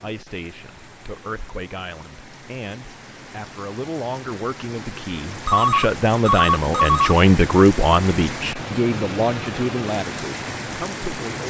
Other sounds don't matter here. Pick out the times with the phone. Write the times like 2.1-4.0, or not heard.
5.5-7.2.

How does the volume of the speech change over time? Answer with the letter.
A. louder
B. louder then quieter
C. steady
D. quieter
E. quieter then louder
B.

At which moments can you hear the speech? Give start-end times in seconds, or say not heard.
0.0-11.4.